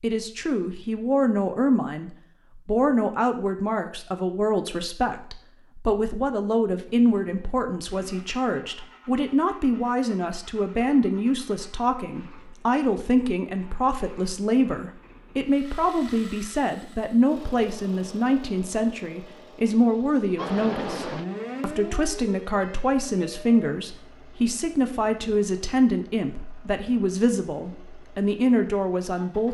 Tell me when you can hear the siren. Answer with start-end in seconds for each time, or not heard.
20.4-23.6.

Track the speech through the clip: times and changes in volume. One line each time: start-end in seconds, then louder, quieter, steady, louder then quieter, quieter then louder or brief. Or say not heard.
0.0-29.4 steady.